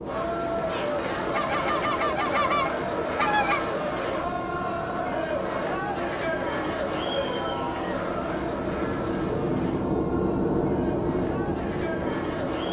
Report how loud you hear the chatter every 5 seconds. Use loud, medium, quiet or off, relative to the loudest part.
loud, loud, medium.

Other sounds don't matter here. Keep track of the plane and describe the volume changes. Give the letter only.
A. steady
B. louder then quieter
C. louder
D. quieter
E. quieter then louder
C.